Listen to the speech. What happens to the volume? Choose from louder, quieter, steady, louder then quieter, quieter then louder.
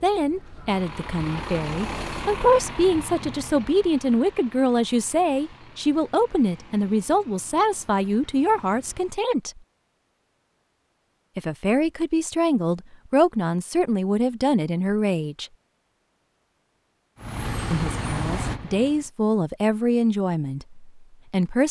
steady.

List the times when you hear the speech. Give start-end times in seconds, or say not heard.
0.0-9.6, 11.3-15.5, 17.7-21.6.